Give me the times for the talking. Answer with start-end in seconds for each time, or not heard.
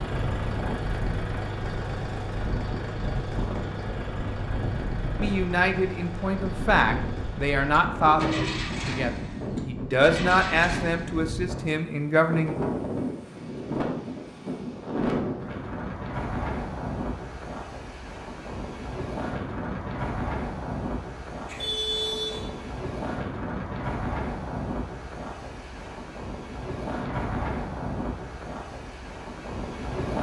5.2-12.6.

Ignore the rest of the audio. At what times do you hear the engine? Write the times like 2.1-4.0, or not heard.
0.0-11.3.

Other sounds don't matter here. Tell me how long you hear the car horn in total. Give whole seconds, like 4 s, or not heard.
2 s.